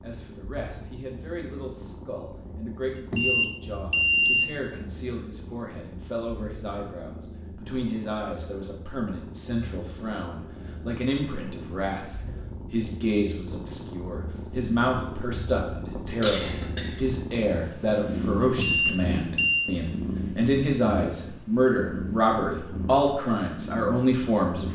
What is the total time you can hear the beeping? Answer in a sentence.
You can hear the beeping for 3 seconds altogether.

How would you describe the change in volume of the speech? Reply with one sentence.
The volume of the speech goes up.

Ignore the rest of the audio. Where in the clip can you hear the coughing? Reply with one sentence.
You can hear the coughing from 16.0 to 17.1 s.